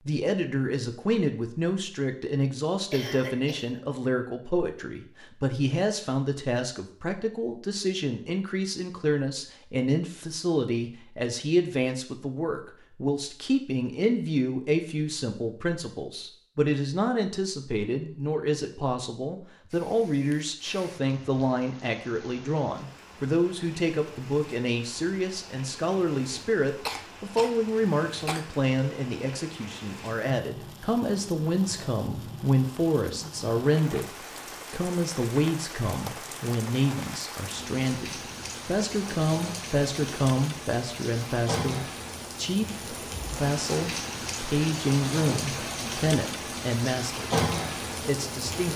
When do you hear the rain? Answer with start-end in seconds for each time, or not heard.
19.7-48.7.